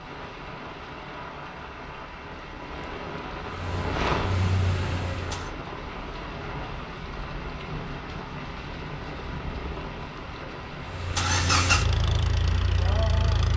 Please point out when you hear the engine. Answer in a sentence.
You can hear the engine from 3.5 to 5.5 s and from 10.8 to 13.5 s.